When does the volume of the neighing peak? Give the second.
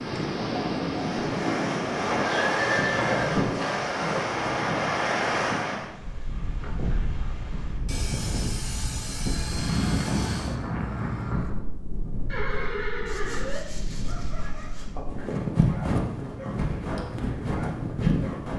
3 s.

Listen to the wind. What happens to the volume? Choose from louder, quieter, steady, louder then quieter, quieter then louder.
quieter then louder.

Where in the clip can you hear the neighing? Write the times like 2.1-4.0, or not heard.
2.2-3.9, 12.2-13.6.